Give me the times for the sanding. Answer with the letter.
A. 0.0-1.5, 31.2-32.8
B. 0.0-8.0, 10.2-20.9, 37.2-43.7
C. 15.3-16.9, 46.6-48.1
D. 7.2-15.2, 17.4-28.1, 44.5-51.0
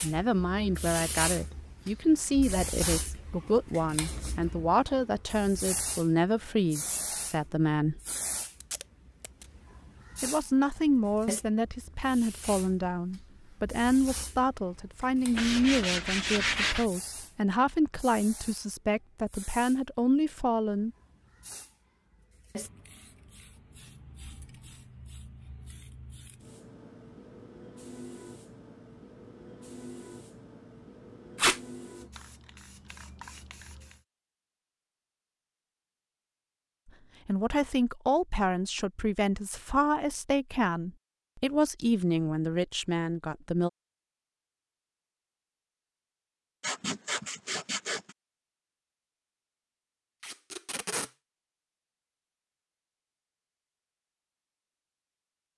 C.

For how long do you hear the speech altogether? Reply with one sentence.
You can hear the speech for 25 seconds altogether.